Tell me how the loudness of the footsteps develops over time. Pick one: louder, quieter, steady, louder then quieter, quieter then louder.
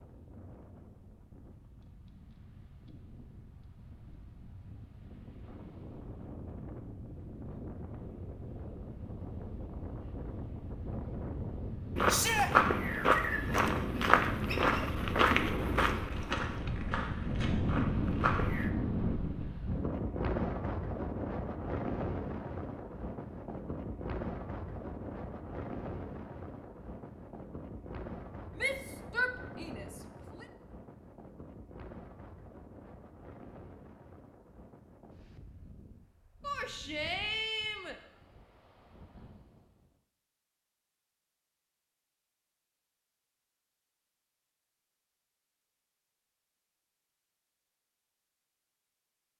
quieter.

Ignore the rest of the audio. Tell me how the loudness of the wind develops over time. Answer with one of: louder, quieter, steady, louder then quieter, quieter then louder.
louder then quieter.